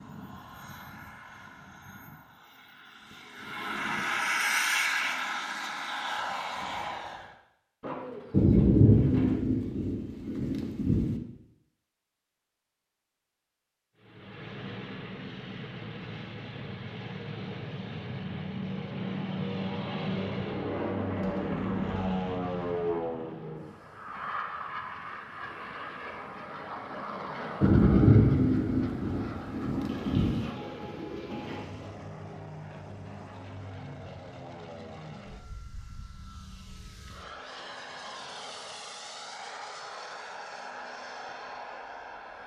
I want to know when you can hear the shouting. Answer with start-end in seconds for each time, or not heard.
not heard.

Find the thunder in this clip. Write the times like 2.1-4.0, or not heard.
8.3-11.2, 27.6-30.4.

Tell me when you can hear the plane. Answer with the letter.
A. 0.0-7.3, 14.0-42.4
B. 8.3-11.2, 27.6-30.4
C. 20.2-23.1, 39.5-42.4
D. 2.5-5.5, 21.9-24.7
A.